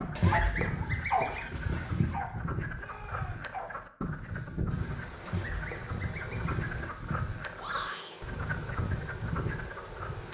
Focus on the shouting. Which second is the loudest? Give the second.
8 s.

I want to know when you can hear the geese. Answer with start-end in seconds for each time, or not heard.
0.1-2.1, 5.2-7.2.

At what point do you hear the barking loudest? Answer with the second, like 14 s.
1 s.